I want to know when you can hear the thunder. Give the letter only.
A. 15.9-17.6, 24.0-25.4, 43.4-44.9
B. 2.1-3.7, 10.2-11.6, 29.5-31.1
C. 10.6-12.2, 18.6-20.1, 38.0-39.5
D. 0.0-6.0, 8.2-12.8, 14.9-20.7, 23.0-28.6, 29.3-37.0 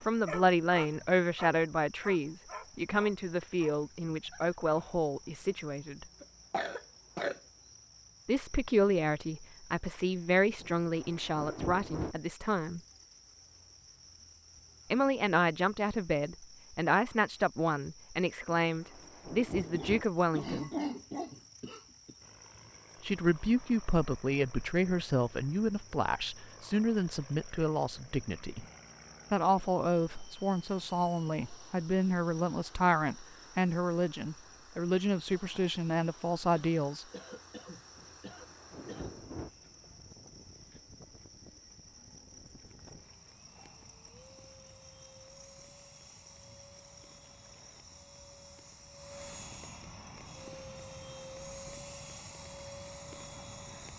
C.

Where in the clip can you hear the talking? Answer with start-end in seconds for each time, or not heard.
0.0-6.0, 8.2-12.8, 14.9-20.7, 23.0-28.6, 29.3-37.0.